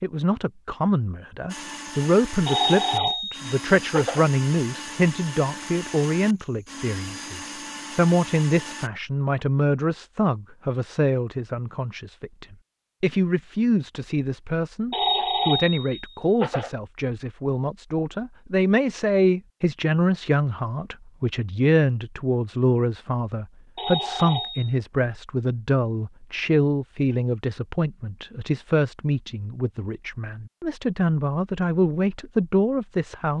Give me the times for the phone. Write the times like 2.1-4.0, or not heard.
2.5-4.2, 14.9-16.7, 23.8-24.7.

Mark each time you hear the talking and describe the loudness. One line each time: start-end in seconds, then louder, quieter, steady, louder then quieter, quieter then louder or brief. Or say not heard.
0.0-33.3 steady.